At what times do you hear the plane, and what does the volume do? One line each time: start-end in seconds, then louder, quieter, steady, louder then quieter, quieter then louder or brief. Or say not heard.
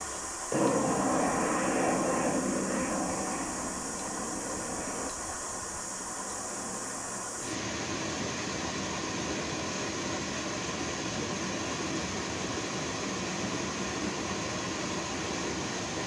0.0-7.5 quieter.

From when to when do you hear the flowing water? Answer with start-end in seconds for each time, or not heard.
0.0-16.0.